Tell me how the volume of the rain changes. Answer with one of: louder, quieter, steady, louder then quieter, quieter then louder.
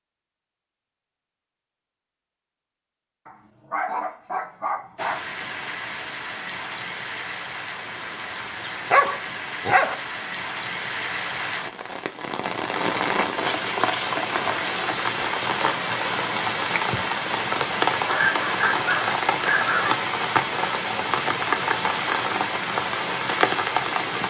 louder.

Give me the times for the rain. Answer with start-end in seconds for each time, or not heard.
5.0-24.2.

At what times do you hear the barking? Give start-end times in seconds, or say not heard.
3.2-5.2, 8.9-10.0, 18.1-19.9.